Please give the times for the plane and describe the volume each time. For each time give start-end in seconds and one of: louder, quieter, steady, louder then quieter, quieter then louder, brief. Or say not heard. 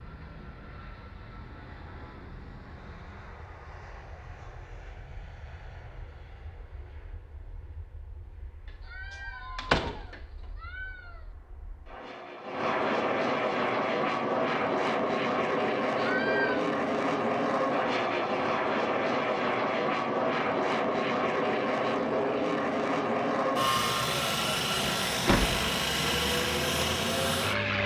0.0-27.8 quieter then louder.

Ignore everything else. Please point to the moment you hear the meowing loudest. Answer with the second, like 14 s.
16 s.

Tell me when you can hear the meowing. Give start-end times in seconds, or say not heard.
8.8-11.3, 15.9-16.6.